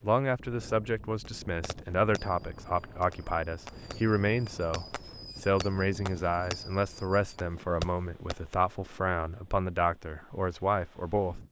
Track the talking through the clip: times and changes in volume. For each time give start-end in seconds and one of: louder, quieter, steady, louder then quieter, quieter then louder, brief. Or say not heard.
0.0-11.4 steady.